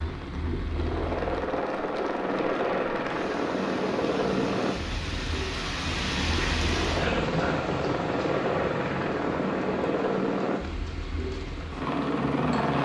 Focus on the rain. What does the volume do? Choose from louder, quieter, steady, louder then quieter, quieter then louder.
louder then quieter.